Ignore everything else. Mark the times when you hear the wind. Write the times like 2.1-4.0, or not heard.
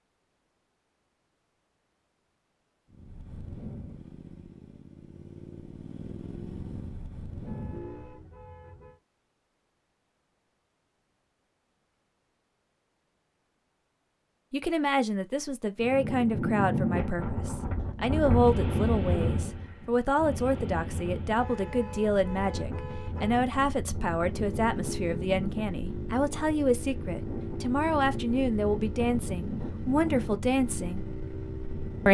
15.8-32.0.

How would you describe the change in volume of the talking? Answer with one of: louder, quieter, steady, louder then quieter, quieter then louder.
steady.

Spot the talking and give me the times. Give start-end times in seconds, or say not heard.
14.5-31.1.